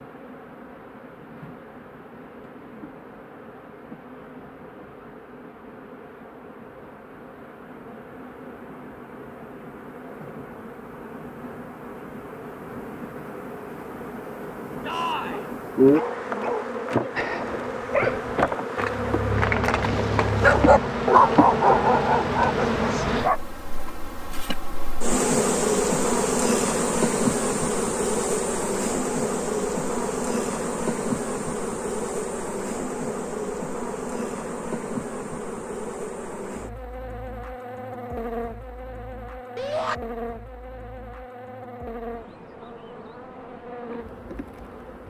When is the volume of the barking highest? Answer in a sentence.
The loudest moment of the barking is at 21 seconds.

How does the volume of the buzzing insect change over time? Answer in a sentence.
The volume of the buzzing insect goes up, then down.